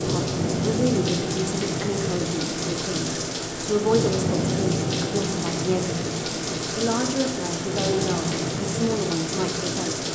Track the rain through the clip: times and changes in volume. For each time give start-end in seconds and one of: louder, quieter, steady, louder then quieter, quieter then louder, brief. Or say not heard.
0.0-10.1 steady.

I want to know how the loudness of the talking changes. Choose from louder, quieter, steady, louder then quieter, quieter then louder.
steady.